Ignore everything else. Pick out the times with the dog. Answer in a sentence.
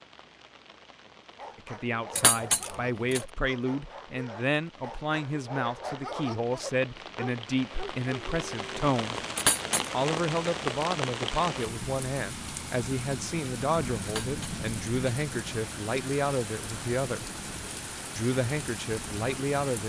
You can hear the dog from 1.4 to 8.7 s.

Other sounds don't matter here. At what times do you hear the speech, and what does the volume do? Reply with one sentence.
The speech can be heard from 1.6 to 9.2 s, at a steady volume; from 9.9 to 17.2 s, at a steady volume; and briefly from 18.1 to 19.8 s.